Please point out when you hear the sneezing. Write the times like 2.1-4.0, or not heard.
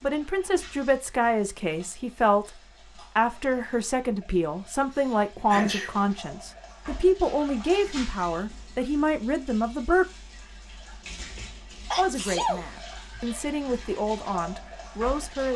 5.0-6.1, 11.3-13.2.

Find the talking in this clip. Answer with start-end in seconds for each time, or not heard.
0.0-10.1, 11.9-15.5.